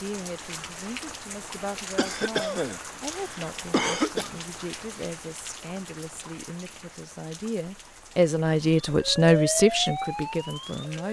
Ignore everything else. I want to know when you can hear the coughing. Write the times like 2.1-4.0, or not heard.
1.9-4.3.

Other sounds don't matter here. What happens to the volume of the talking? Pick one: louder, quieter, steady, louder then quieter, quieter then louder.
louder.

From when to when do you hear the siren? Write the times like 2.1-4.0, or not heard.
8.8-11.0.